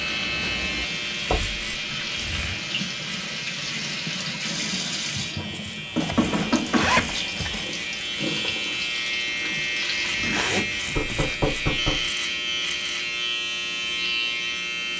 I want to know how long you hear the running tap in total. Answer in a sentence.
You can hear the running tap for 10 seconds altogether.